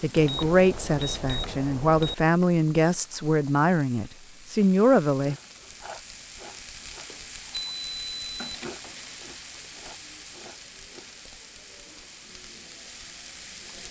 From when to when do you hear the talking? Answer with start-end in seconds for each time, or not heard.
0.0-5.3.